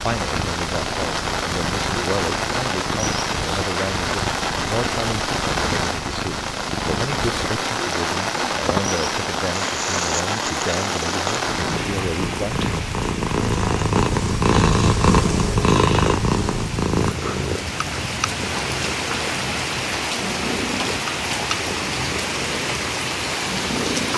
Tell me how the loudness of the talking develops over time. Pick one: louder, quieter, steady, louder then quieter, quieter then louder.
steady.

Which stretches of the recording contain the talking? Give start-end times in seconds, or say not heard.
0.0-12.6.